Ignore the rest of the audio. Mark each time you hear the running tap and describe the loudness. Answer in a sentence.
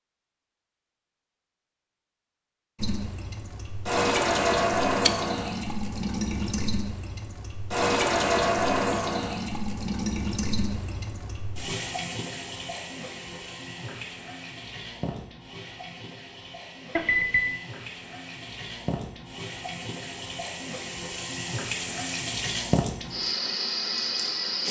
You can hear the running tap from 2.8 to 24.6 s, getting quieter then louder.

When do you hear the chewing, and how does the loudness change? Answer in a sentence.
You can't hear the chewing here.